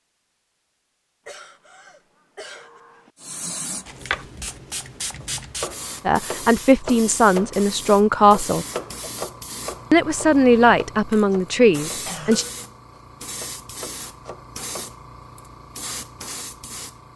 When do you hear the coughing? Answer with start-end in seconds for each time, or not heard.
1.2-3.1, 8.7-9.2, 12.1-12.8.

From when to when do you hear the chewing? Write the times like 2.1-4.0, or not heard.
not heard.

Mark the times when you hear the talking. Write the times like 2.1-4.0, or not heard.
6.0-8.7, 9.9-12.4.